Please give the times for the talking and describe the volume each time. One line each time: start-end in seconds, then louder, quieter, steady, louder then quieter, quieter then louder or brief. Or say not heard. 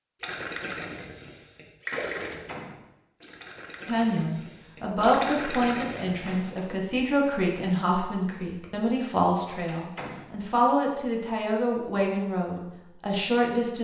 3.9-13.7 steady.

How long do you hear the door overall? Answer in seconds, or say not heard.
2 s.